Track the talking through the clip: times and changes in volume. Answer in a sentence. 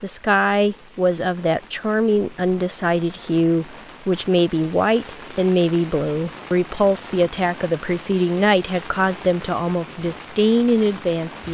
You can hear the talking from 0.0 to 11.4 s, at a steady volume.